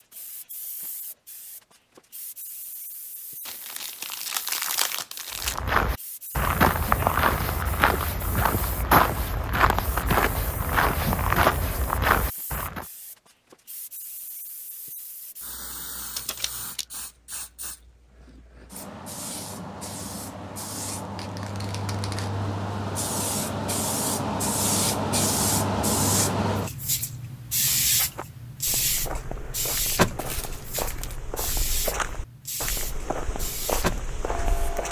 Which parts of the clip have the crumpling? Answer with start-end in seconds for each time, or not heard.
3.5-5.6, 16.1-16.9, 30.1-31.2.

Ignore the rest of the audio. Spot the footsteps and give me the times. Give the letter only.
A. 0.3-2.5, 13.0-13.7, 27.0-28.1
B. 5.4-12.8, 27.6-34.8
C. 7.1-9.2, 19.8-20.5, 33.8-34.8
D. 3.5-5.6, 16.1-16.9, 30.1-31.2
B.